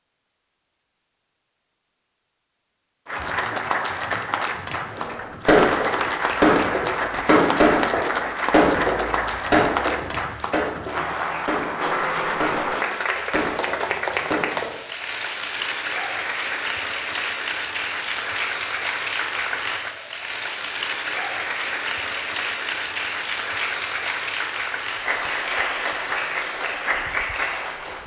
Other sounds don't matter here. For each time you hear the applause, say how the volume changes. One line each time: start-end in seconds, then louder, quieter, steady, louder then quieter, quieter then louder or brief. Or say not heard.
3.0-28.0 steady.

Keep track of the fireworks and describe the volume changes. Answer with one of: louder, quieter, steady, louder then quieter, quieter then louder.
quieter.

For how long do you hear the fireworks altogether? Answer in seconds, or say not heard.
10 s.